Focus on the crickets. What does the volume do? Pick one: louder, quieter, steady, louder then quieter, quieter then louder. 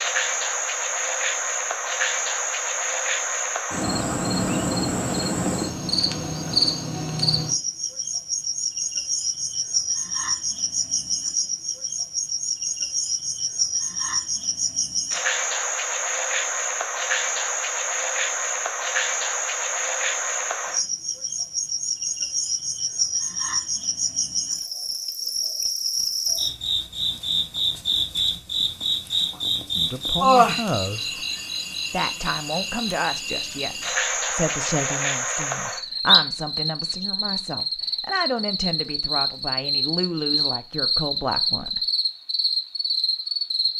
steady.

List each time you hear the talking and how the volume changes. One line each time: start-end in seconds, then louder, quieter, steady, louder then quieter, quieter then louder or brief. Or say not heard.
29.8-31.1 brief
31.9-41.8 steady.